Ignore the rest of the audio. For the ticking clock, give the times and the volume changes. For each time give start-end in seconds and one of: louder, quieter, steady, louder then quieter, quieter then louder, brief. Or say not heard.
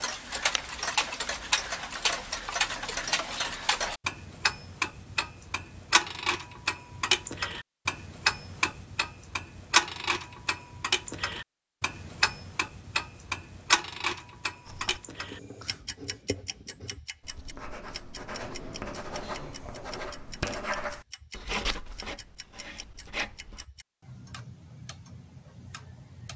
0.0-26.3 quieter.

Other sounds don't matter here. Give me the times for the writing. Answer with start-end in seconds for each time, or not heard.
14.7-23.6.